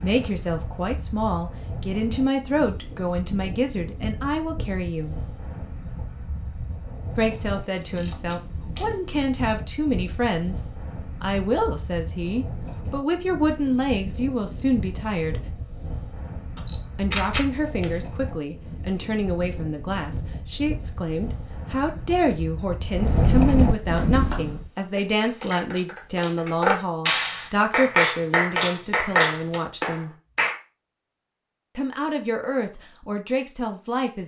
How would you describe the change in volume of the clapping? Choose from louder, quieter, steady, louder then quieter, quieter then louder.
louder.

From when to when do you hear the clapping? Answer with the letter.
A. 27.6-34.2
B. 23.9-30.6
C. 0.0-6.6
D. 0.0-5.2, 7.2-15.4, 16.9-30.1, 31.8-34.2
B.